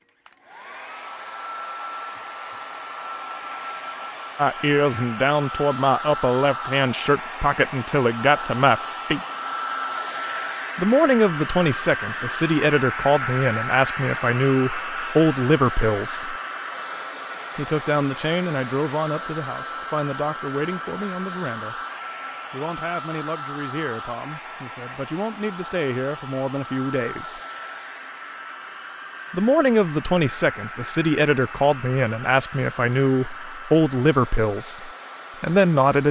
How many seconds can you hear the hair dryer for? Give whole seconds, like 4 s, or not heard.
36 s.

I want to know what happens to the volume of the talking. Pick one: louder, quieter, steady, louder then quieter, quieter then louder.
quieter then louder.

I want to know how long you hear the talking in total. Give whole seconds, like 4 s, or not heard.
26 s.